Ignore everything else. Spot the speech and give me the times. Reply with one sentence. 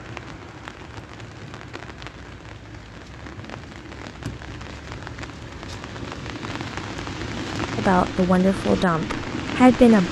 The speech can be heard from 7.8 to 10.0 s.